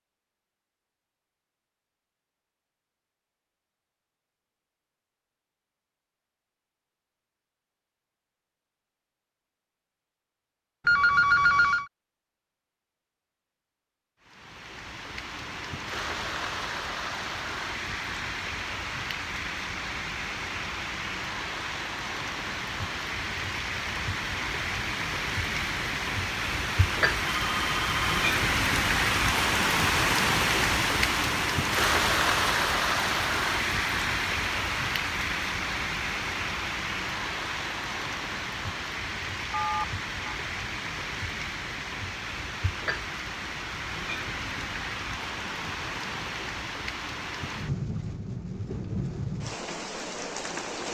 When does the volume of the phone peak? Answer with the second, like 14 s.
11 s.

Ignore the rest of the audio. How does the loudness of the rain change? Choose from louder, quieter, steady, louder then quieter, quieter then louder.
louder then quieter.